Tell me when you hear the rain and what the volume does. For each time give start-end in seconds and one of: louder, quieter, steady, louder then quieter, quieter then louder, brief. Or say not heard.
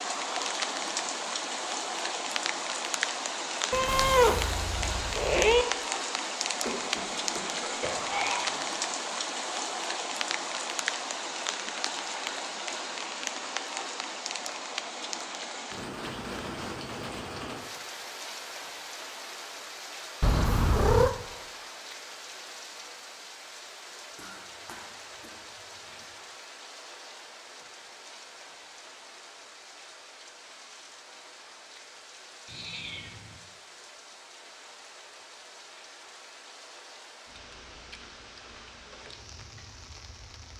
0.0-40.5 quieter.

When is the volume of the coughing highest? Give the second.
8 s.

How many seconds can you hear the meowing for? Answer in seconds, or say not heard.
4 s.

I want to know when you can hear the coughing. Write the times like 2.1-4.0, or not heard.
6.7-8.6, 24.1-25.3.